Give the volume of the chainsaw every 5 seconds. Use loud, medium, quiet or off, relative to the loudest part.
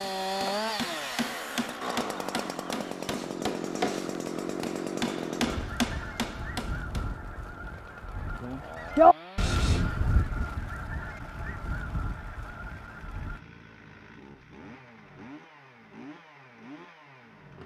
loud, medium, quiet, quiet.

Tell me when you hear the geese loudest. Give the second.
9 s.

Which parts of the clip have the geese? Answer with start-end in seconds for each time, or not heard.
5.4-13.4.